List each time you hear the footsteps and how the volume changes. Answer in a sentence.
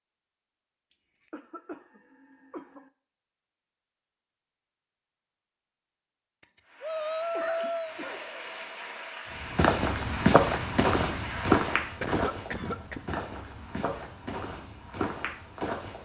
You can hear the footsteps from 9.4 to 15.9 s, getting quieter.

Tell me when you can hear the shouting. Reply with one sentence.
The shouting can be heard from 6.8 to 8.0 s.